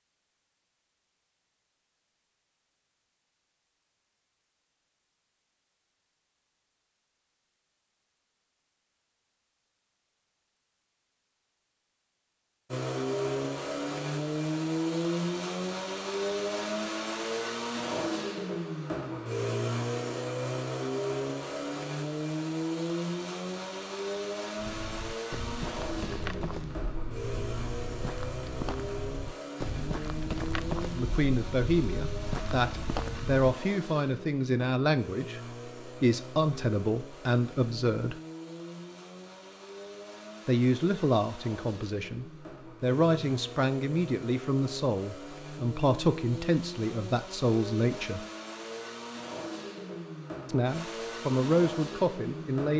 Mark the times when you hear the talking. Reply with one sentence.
You can hear the talking from 30.9 to 38.2 s, from 40.5 to 48.2 s and from 50.5 to 52.7 s.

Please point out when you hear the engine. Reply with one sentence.
You can hear the engine from 12.7 to 52.7 s.